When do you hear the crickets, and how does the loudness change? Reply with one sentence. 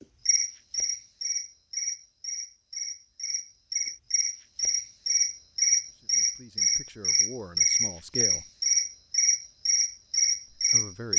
The crickets can be heard from 0.0 to 11.1 s, getting louder.